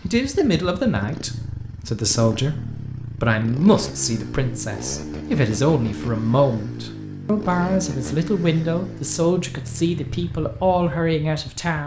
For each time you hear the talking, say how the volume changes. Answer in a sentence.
The talking can be heard from 0.0 to 11.8 s, at a steady volume.